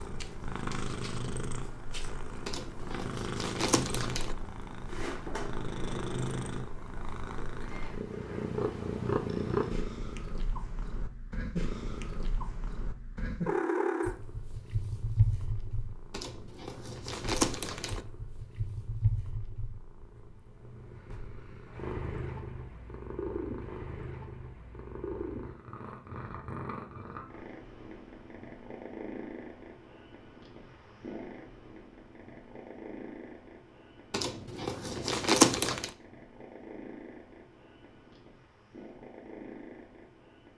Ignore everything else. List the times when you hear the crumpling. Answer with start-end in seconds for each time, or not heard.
2.5-4.3, 16.1-18.1, 34.1-35.9.